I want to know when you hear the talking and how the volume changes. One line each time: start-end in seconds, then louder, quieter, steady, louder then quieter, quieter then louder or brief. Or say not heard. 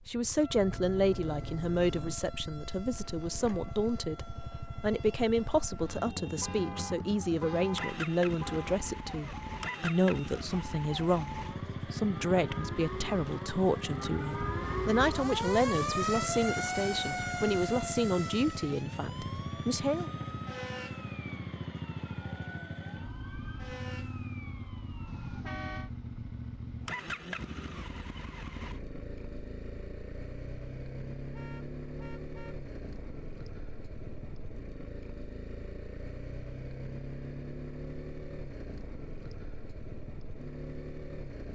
0.1-20.1 steady.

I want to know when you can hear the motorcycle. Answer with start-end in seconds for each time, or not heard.
0.0-41.5.